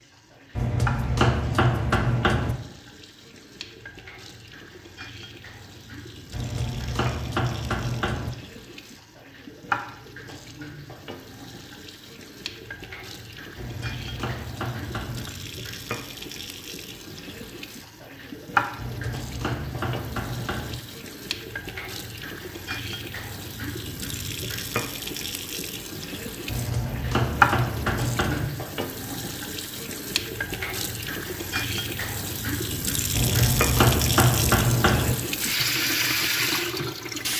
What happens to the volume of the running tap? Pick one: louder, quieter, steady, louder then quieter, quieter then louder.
louder.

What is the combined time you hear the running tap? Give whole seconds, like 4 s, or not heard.
37 s.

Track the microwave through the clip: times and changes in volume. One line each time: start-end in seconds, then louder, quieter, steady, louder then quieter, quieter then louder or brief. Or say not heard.
not heard.